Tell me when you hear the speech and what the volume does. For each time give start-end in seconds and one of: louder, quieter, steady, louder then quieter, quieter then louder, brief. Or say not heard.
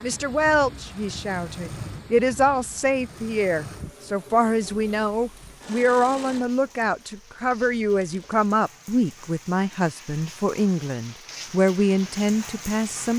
0.0-13.1 steady.